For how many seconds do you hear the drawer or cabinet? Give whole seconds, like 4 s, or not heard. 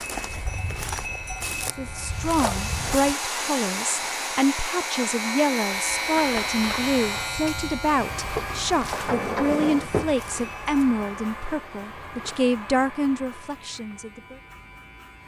2 s.